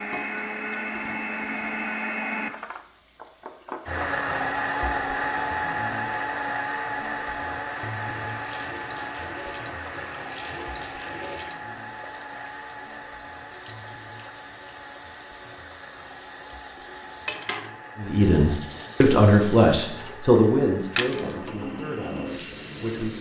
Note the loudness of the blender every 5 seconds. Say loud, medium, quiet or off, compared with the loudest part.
loud, loud, medium, quiet, quiet.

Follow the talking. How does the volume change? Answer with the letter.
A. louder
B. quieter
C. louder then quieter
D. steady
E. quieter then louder
B.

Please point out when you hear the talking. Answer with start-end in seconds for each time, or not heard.
17.9-23.1.